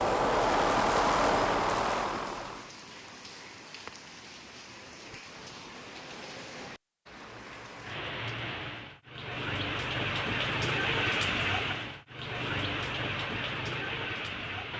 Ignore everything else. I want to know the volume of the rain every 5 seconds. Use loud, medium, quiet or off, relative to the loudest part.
quiet, medium, loud.